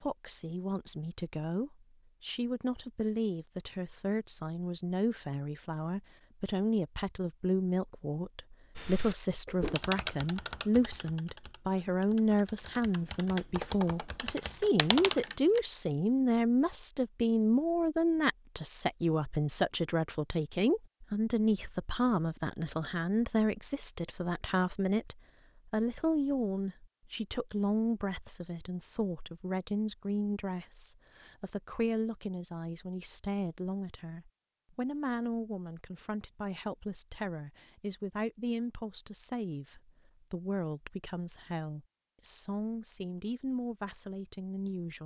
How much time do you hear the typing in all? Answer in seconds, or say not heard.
7 s.